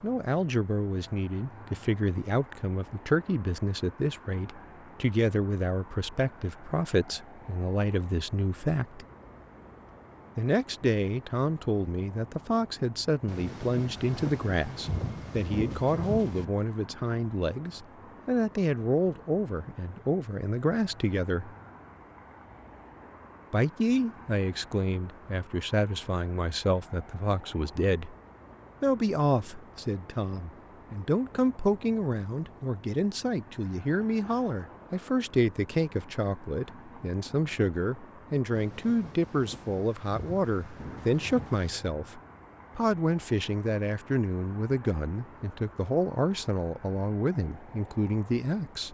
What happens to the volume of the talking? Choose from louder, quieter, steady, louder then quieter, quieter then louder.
steady.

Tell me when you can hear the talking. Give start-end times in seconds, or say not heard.
0.0-9.1, 10.3-21.5, 23.5-28.1, 28.8-48.9.